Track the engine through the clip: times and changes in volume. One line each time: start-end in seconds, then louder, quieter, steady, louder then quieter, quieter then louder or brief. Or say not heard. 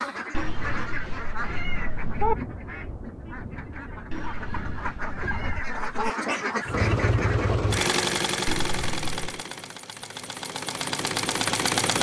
6.7-11.9 quieter then louder.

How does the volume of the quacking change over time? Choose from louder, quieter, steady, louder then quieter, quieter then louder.
quieter then louder.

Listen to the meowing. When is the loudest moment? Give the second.
2 s.